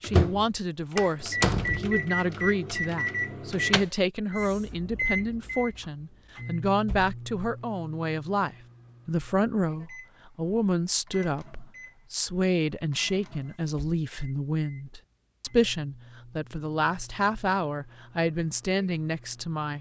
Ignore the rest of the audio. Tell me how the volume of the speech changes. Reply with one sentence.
The loudness of the speech stays about the same.